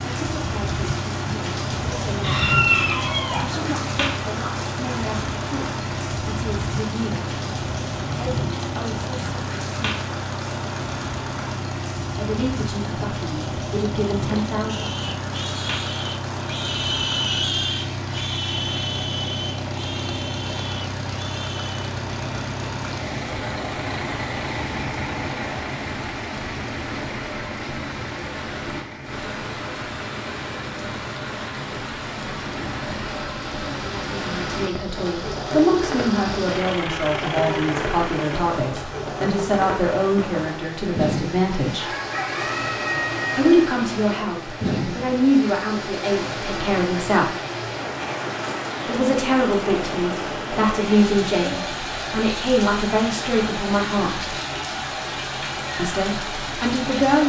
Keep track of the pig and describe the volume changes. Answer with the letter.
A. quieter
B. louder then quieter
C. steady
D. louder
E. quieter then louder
B.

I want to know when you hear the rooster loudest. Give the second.
3 s.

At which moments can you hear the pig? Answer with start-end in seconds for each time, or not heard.
14.2-21.9.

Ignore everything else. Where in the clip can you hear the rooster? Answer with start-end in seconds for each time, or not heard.
2.2-3.6, 41.8-43.5.